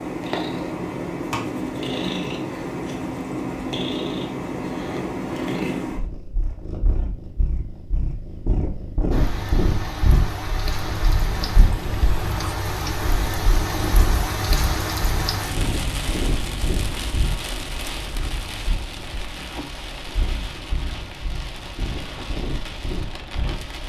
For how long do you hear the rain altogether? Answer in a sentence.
The rain can be heard for 15 seconds in total.